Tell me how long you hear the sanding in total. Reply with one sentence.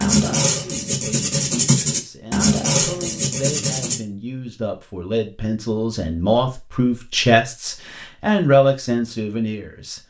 The sanding can be heard for 4 seconds in total.